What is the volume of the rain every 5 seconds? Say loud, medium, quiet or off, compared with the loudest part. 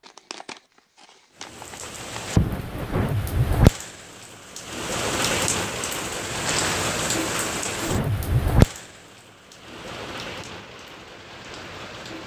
loud, loud, quiet.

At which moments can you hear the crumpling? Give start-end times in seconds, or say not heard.
0.1-2.3, 6.2-7.1.